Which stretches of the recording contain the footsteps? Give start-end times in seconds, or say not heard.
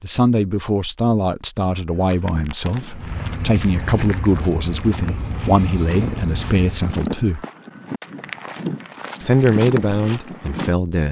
1.9-10.8.